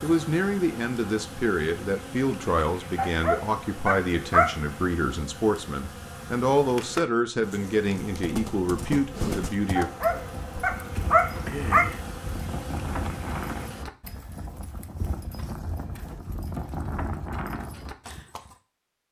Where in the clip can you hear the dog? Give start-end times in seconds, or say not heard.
3.0-4.8, 9.8-11.8.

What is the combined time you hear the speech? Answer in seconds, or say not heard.
10 s.